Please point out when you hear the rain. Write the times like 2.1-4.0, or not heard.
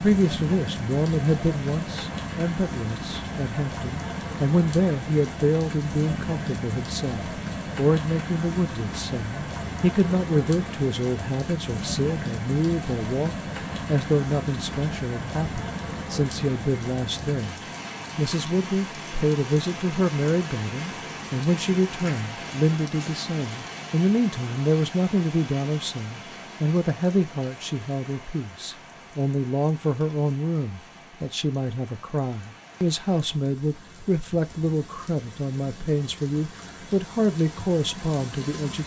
0.0-38.8.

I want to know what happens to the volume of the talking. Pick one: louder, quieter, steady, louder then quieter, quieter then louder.
steady.